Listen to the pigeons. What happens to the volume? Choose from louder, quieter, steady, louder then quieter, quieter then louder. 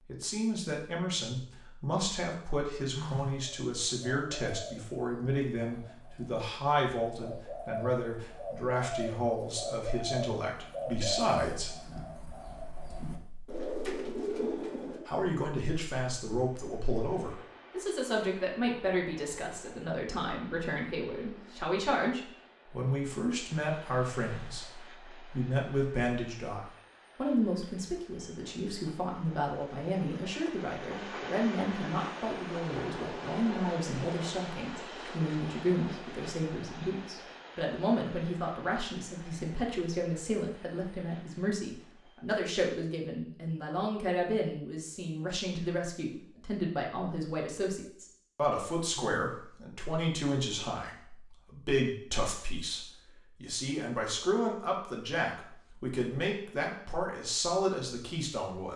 louder.